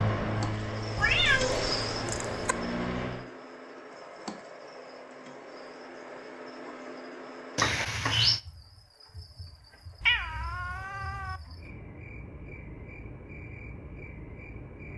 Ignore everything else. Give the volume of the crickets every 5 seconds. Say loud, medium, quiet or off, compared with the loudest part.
loud, medium, medium.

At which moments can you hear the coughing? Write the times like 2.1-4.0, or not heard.
not heard.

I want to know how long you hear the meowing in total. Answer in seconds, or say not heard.
4 s.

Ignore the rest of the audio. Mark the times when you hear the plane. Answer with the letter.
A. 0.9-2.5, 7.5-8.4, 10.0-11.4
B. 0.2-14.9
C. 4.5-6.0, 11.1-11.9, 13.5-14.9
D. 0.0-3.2
D.